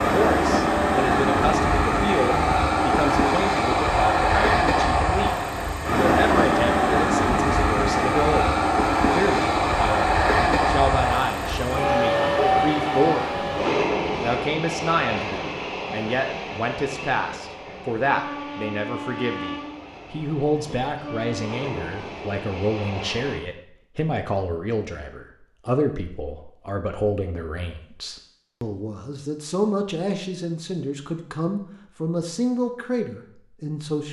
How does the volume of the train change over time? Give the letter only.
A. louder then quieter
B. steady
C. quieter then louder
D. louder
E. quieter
E.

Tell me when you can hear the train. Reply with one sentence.
The train can be heard from 0.0 to 23.4 s.